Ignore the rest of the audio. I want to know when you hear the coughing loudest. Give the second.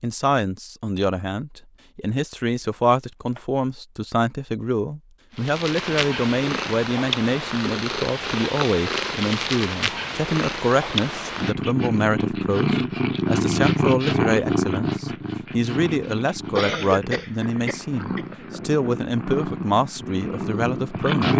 17 s.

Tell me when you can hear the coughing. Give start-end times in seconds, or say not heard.
16.6-18.4.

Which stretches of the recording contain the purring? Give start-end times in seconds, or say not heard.
5.3-21.3.